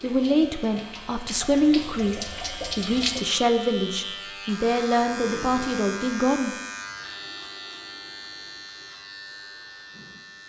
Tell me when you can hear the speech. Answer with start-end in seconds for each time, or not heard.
0.0-6.5.